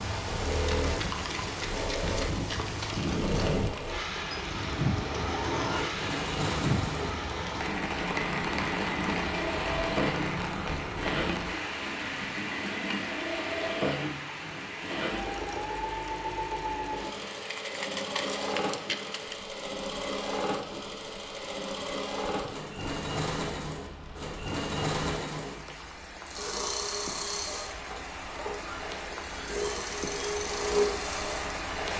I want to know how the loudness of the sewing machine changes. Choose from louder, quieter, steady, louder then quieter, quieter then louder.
steady.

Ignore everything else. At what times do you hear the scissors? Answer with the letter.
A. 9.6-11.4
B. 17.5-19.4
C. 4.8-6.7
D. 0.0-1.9
B.